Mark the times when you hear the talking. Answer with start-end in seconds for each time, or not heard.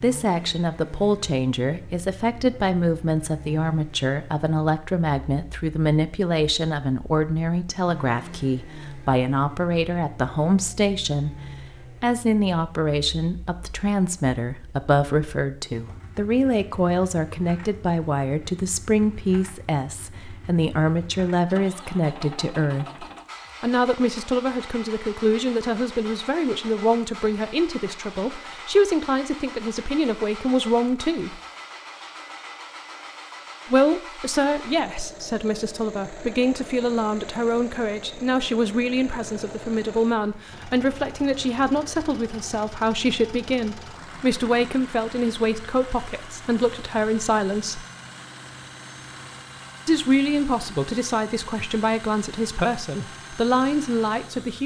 0.0-11.3, 12.0-31.4, 33.7-47.9, 49.9-54.6.